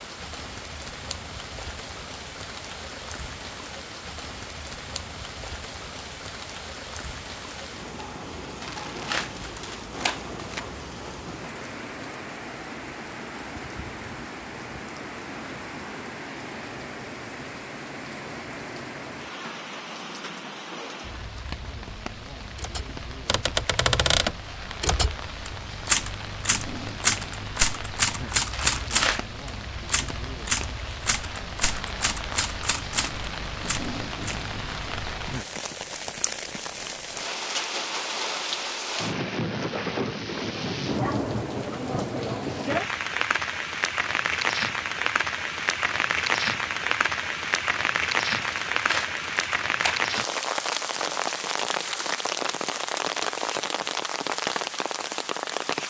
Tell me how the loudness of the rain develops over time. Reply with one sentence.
The volume of the rain goes up.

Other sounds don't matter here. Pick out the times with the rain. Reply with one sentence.
The rain can be heard from 0.0 to 55.8 s.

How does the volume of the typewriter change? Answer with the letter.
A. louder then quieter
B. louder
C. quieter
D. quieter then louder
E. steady
C.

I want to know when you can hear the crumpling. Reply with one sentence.
The crumpling can be heard from 8.6 to 10.6 s, from 28.5 to 29.2 s and from 48.4 to 50.4 s.